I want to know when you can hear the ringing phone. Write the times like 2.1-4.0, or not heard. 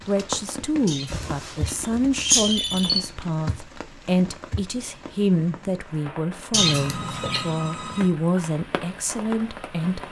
1.1-3.0, 6.5-8.2.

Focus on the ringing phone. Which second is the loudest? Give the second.
3 s.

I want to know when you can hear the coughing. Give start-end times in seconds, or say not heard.
0.8-2.9, 6.5-7.5.